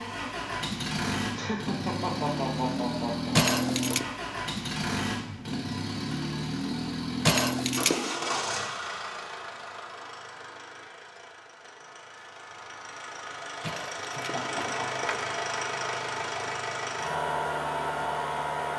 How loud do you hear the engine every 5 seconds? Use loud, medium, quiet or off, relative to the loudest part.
loud, loud, medium, loud.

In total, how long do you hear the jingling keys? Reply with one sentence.
The jingling keys can be heard for 3 seconds in total.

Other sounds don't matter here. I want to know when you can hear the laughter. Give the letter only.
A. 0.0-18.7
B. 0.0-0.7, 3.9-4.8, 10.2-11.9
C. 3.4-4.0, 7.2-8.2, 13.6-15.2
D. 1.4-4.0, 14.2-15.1
D.